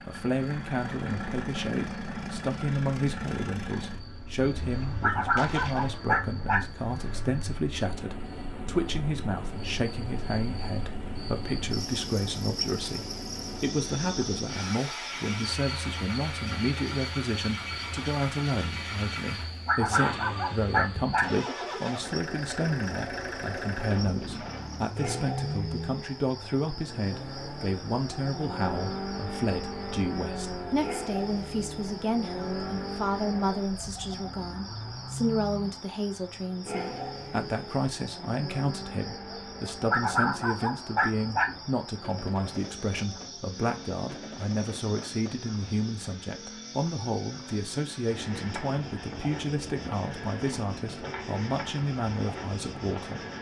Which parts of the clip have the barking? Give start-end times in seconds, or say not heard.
5.0-6.7, 19.6-21.4, 39.9-41.5.